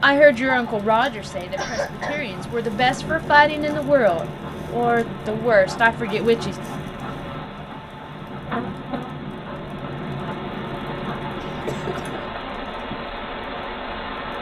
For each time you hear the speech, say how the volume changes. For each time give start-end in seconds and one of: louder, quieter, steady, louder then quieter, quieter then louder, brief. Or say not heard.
0.0-6.5 quieter then louder.